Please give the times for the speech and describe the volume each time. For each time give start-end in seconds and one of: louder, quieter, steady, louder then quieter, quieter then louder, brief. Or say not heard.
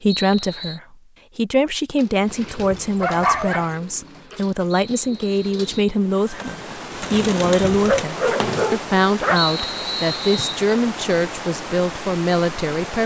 0.0-13.0 steady.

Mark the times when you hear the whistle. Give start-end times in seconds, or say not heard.
0.1-0.8, 4.7-6.0, 9.3-10.7.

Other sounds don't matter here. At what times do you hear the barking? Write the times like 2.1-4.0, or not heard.
2.5-3.7, 7.8-9.4.